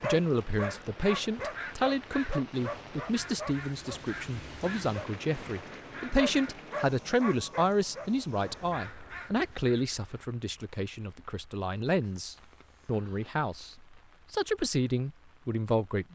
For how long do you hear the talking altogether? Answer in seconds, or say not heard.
16 s.